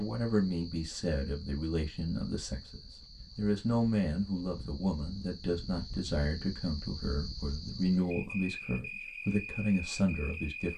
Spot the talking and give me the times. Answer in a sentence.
You can hear the talking from 0.0 to 10.7 s.